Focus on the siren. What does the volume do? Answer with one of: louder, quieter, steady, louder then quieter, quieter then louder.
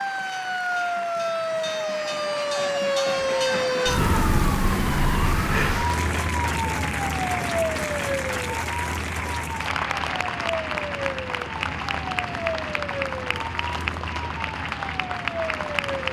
quieter.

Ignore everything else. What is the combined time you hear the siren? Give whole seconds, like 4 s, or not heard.
16 s.